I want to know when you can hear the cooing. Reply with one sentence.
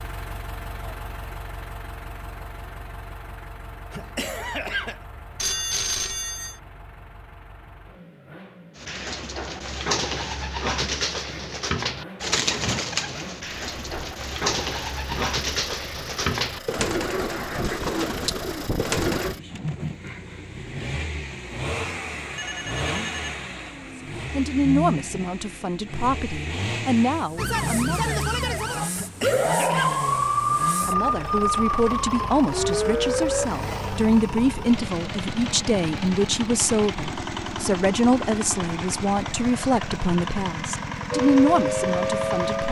The cooing can be heard from 8.8 to 19.4 s.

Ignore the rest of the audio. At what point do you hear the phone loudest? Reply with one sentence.
The volume of the phone peaks at 6 seconds.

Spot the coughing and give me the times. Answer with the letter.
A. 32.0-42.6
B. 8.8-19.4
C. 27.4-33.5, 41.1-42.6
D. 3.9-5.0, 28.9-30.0
D.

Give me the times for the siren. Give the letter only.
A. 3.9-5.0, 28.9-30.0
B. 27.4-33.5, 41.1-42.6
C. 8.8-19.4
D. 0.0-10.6
B.